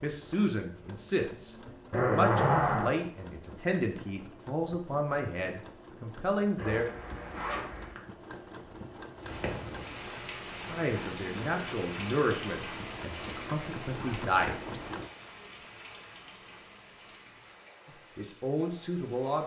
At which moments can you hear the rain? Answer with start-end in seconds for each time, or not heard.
9.2-19.4.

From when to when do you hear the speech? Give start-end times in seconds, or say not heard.
0.0-6.8, 10.7-14.8, 17.9-19.4.